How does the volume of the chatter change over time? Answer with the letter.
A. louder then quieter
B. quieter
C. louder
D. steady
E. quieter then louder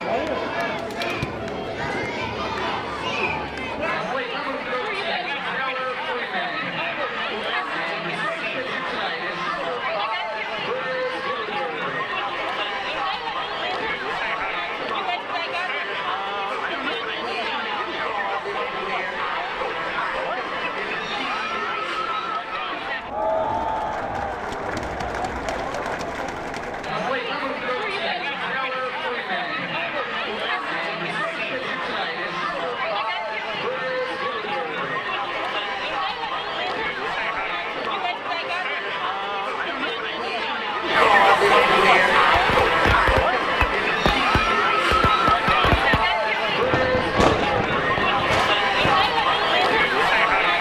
C.